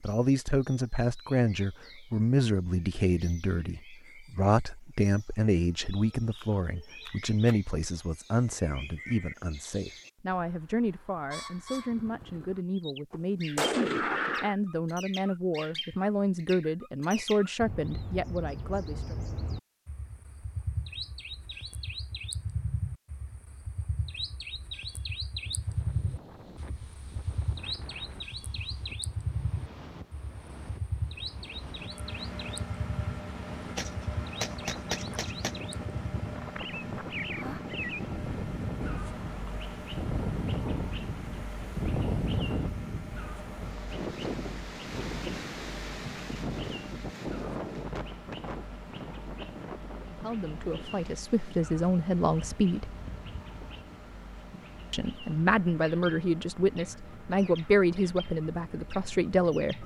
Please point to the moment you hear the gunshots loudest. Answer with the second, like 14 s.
14 s.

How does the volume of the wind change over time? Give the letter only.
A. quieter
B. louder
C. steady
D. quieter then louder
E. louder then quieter
E.